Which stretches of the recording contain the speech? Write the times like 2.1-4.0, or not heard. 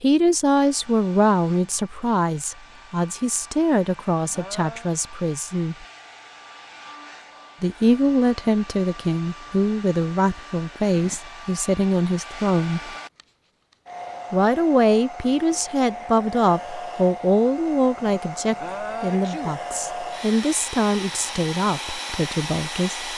0.0-5.8, 7.6-12.9, 14.3-23.1.